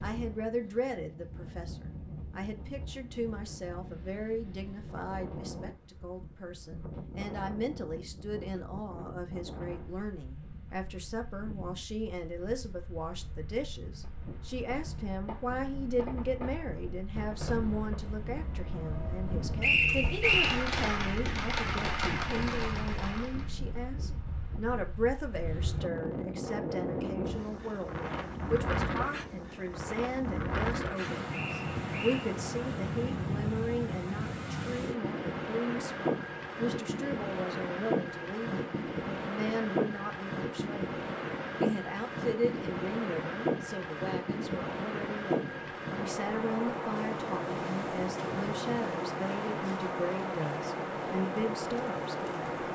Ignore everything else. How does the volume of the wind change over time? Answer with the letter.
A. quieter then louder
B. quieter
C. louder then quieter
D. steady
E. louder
E.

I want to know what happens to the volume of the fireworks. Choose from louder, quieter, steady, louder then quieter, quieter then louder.
louder.